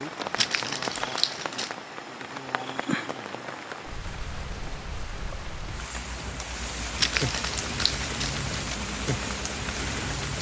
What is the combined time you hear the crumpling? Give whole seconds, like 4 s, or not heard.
3 s.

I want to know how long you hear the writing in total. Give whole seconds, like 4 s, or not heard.
3 s.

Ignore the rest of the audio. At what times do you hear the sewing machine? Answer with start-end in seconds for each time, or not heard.
not heard.